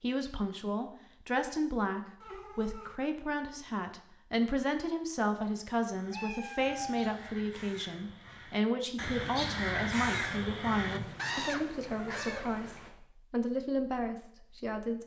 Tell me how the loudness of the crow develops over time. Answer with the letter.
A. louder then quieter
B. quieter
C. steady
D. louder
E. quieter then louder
D.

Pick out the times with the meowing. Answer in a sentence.
You can hear the meowing from 2.2 to 3.0 s, from 6.1 to 7.2 s and from 10.9 to 12.9 s.